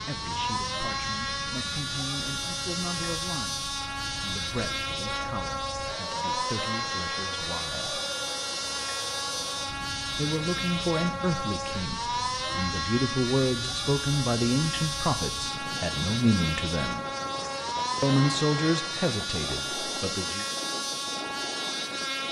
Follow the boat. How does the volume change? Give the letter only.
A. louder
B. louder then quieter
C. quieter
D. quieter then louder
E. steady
E.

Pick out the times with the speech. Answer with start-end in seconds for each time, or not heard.
0.0-8.0, 10.1-17.1, 18.0-20.4.